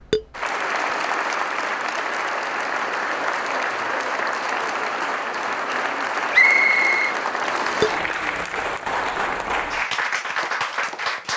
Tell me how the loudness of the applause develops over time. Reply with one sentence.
The volume of the applause stays about the same.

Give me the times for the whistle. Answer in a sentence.
The whistle can be heard from 6.3 to 7.9 s.